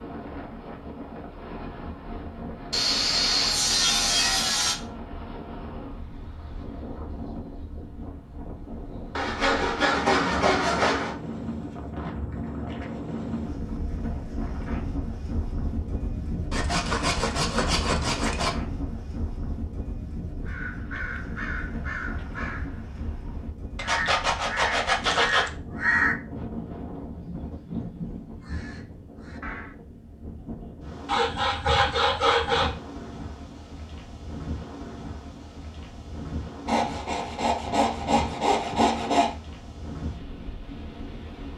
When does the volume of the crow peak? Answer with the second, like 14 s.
26 s.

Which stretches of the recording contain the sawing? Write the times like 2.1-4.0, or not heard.
2.7-4.8, 9.2-11.2, 16.5-18.5, 23.8-25.5, 31.1-32.7, 36.6-39.4.